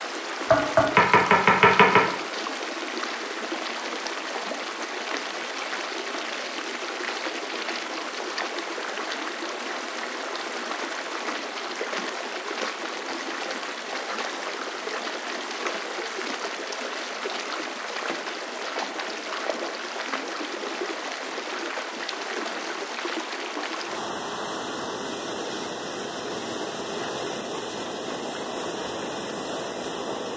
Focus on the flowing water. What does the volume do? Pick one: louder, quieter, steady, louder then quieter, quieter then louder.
steady.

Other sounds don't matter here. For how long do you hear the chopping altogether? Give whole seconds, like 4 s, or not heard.
2 s.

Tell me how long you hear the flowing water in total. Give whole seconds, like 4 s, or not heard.
30 s.